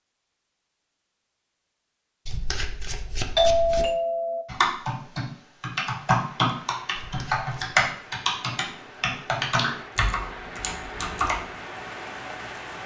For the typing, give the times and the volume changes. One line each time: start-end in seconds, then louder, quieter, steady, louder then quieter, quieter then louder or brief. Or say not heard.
4.5-11.4 louder then quieter.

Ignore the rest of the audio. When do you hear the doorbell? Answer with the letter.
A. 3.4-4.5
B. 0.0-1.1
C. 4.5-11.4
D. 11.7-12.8
A.